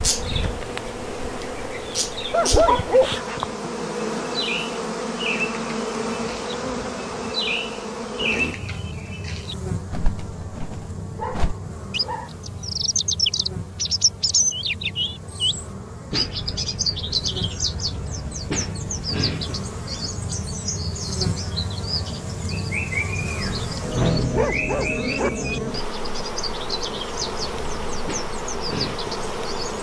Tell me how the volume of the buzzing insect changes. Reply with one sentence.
The loudness of the buzzing insect goes down, then up.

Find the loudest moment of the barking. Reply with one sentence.
The volume of the barking peaks at 3 seconds.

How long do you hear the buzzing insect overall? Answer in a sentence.
The buzzing insect can be heard for 30 seconds in total.